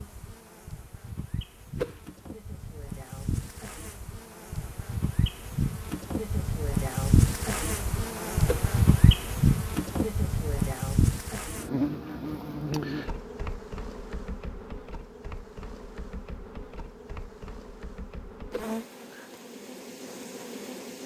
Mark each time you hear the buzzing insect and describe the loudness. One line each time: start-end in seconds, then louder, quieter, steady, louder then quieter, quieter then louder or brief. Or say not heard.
0.0-21.0 louder then quieter.